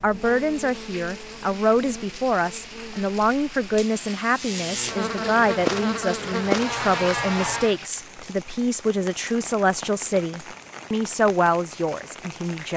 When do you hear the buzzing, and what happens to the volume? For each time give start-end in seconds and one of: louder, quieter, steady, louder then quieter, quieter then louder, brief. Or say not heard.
0.0-7.8 louder.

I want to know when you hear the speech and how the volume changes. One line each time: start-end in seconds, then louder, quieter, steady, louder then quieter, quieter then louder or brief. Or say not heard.
0.0-12.7 steady.